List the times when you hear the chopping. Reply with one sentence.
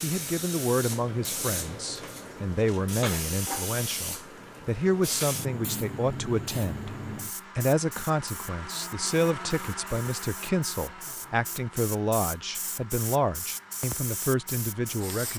You can't hear the chopping here.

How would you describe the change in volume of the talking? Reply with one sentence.
The loudness of the talking stays about the same.